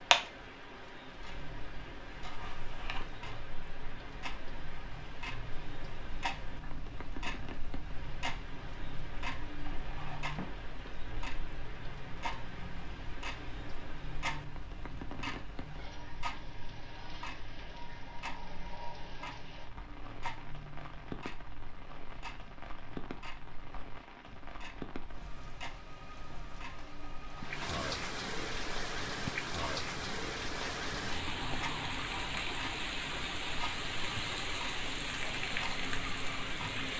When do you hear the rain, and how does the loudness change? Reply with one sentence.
You can hear the rain from 0.0 to 36.9 s, getting louder.